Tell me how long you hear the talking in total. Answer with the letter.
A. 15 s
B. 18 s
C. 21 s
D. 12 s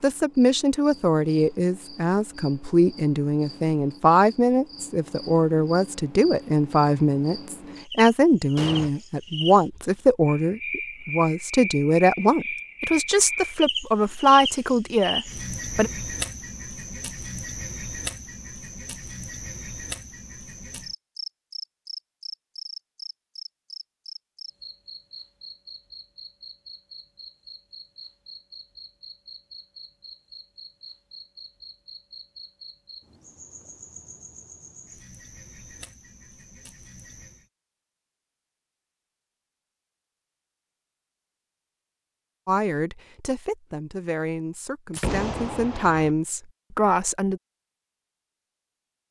C.